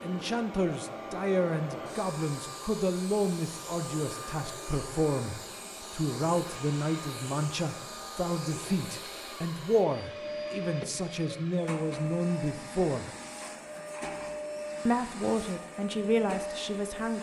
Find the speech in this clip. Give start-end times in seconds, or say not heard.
0.0-13.1, 14.8-17.1.